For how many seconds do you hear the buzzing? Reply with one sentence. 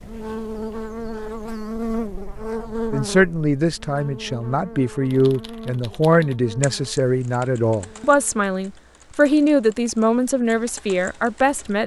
The buzzing can be heard for 8 seconds in total.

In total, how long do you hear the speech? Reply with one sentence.
You can hear the speech for 9 seconds altogether.